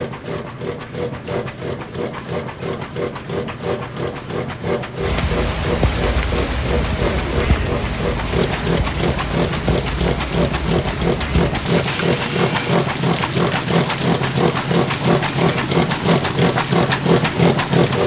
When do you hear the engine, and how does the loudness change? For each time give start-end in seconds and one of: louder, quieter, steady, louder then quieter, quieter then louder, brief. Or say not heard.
0.0-18.0 louder.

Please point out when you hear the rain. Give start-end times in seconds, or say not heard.
5.0-18.0.